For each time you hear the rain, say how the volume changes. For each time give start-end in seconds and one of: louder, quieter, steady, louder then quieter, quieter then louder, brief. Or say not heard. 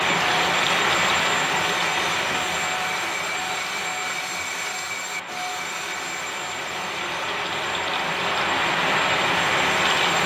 0.0-10.2 quieter then louder.